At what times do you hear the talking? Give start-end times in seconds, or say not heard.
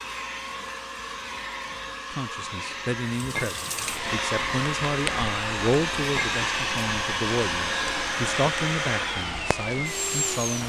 2.1-10.6.